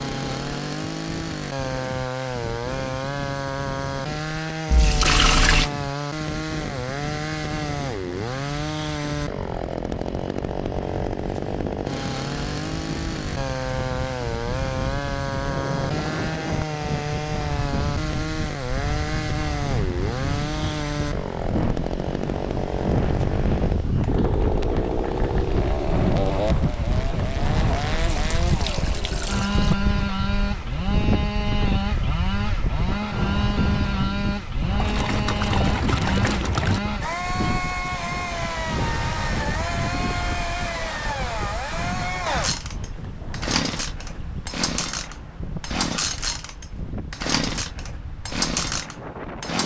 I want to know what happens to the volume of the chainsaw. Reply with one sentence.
The volume of the chainsaw stays about the same.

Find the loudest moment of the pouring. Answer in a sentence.
The volume of the pouring peaks at 5 seconds.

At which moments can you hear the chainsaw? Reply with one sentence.
You can hear the chainsaw from 0.0 to 49.6 s.